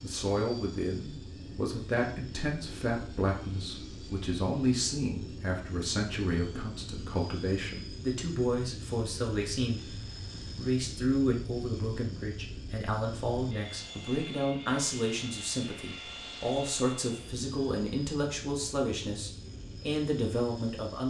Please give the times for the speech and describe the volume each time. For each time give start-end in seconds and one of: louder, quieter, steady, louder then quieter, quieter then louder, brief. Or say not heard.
0.0-21.0 steady.